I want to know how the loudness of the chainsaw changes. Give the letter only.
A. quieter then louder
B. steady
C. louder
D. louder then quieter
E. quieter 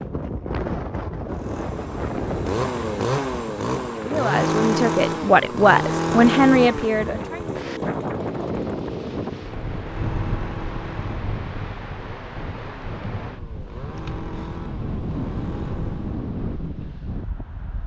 E.